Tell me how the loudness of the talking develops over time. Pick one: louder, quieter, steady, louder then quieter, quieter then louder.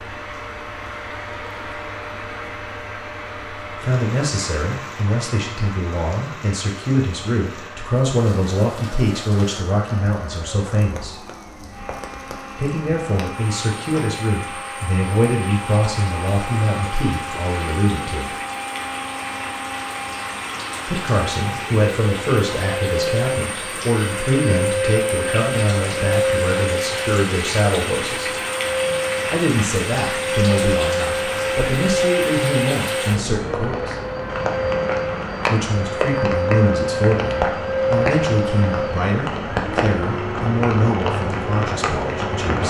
steady.